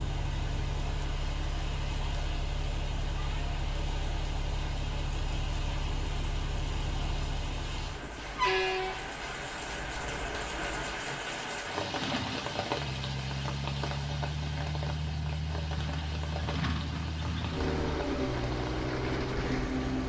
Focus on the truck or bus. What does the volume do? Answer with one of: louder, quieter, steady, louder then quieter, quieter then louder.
louder.